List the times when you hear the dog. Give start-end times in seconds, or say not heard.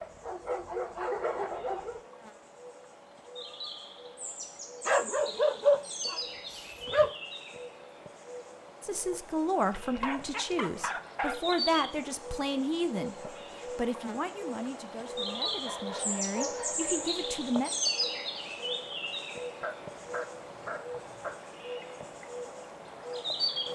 0.0-2.0, 4.8-7.1, 9.7-11.6, 15.3-17.2, 19.6-21.4.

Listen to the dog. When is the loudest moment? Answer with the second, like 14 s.
6 s.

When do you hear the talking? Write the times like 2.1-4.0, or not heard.
8.8-17.7.